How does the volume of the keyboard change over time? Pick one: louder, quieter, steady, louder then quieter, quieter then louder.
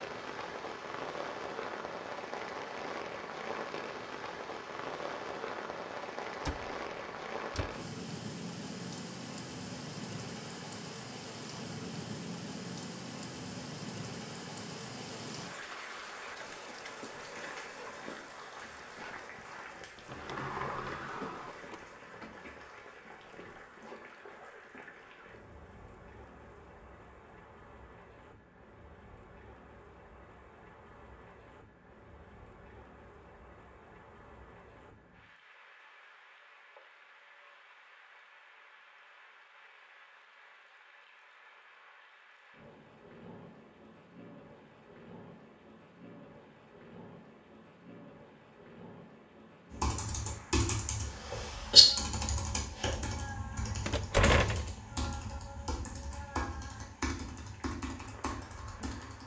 quieter.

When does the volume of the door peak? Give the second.
54 s.